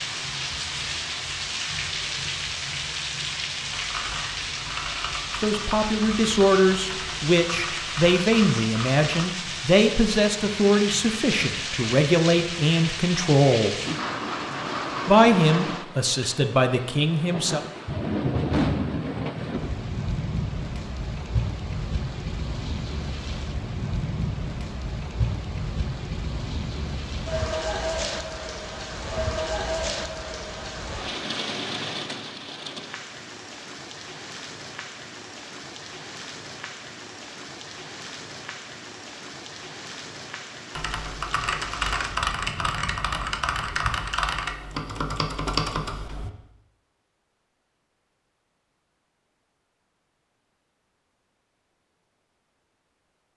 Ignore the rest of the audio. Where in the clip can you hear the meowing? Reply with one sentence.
The meowing can't be heard in this clip.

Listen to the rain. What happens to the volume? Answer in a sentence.
The loudness of the rain goes down.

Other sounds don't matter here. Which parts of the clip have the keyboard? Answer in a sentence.
You can hear the keyboard from 3.7 to 9.3 s and from 40.8 to 46.3 s.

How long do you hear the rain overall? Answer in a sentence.
You can hear the rain for 44 seconds altogether.